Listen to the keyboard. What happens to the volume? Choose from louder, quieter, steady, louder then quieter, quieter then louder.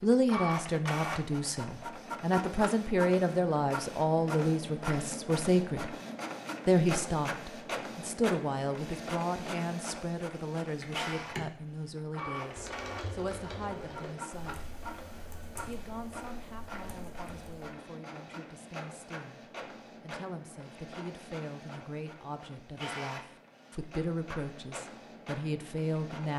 quieter.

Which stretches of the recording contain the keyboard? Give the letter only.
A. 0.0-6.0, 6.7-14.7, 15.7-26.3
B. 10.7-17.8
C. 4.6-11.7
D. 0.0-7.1
B.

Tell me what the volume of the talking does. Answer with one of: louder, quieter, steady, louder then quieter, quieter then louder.
quieter then louder.